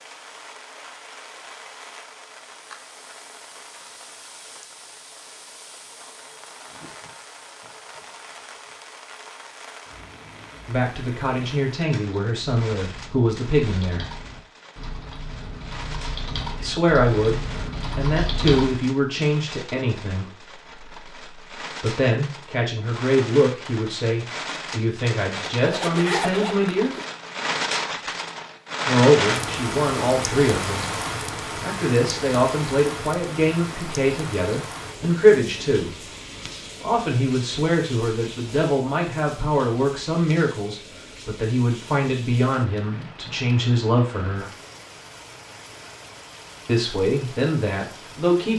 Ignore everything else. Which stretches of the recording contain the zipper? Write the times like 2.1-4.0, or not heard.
25.5-27.1.